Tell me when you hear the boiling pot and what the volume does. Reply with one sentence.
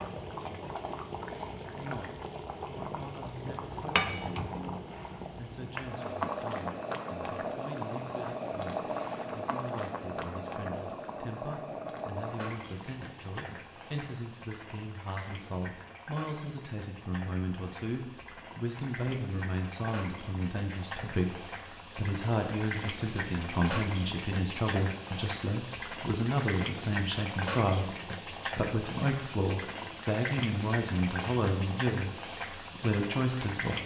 The boiling pot can be heard from 0.0 to 33.8 s, getting quieter then louder.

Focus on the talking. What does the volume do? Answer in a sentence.
The loudness of the talking goes up.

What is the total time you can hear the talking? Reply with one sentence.
You can hear the talking for 32 seconds altogether.